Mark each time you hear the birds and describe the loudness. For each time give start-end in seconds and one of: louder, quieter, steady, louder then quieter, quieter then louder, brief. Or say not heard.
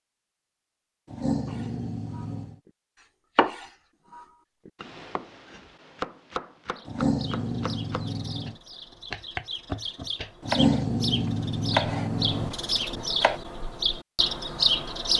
6.8-15.1 louder.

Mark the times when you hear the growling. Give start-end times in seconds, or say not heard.
1.1-2.5, 6.8-8.6, 10.4-13.1.